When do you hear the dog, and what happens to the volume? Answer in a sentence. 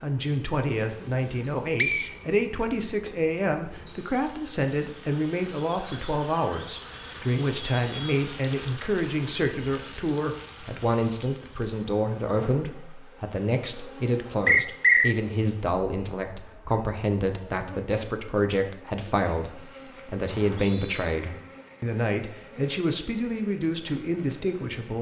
The dog can't be heard in this clip.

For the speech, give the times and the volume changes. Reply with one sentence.
You can hear the speech from 0.0 to 24.9 s, at a steady volume.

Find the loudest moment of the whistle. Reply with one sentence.
The volume of the whistle peaks at 15 seconds.